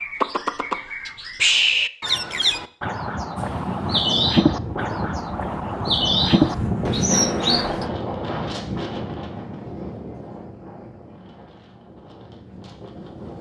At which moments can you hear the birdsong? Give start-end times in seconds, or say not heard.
0.0-7.8.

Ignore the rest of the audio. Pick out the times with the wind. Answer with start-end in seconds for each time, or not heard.
3.4-13.3.